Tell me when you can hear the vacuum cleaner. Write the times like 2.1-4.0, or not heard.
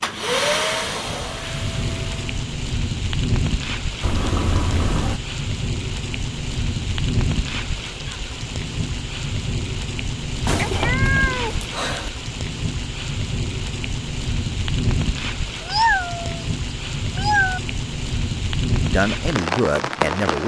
0.0-2.4.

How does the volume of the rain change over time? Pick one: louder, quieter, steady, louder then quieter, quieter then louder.
steady.